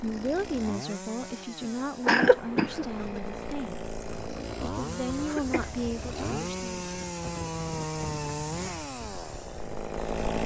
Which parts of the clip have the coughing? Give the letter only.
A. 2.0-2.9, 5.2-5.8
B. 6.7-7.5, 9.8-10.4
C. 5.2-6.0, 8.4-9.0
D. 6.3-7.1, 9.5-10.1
A.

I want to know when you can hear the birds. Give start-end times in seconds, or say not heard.
not heard.